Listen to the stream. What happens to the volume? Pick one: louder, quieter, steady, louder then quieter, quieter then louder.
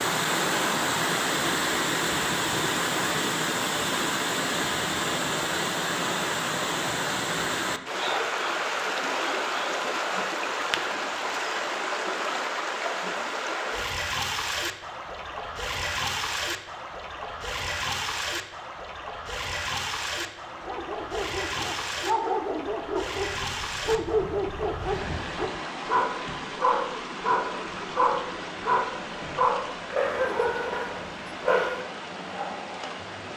quieter.